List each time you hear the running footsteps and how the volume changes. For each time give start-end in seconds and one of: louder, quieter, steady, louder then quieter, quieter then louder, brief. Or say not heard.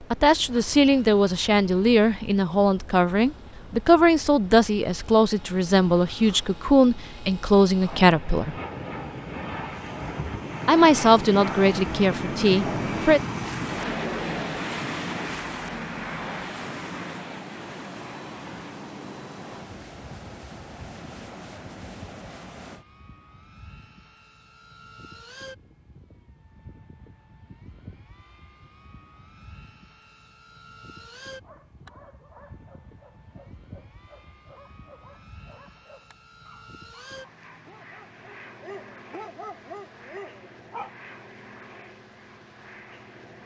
not heard.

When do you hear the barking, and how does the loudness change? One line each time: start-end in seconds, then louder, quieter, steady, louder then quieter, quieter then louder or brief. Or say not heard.
31.2-40.9 louder.